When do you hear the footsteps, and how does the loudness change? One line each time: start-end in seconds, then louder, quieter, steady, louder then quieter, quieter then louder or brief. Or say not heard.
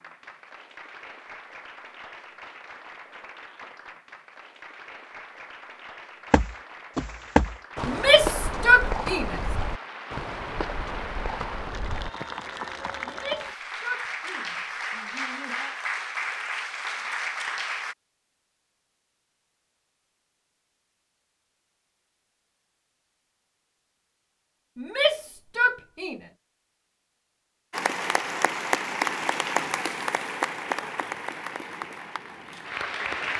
6.3-12.3 quieter.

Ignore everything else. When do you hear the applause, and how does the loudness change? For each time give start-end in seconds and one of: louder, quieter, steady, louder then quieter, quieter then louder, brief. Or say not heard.
0.0-17.9 louder
27.7-33.3 quieter.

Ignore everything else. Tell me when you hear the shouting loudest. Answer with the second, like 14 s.
9 s.